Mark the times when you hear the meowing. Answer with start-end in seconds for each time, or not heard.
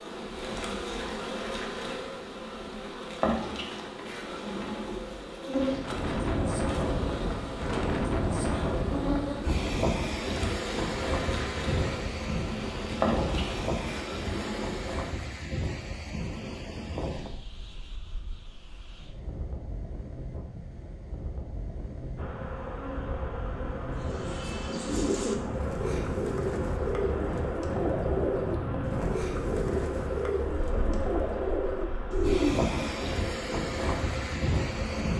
not heard.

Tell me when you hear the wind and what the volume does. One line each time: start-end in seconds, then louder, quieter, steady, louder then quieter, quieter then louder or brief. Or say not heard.
5.6-35.1 quieter then louder.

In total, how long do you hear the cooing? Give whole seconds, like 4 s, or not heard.
9 s.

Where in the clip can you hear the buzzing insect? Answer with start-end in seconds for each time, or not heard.
0.0-15.1, 22.1-35.1.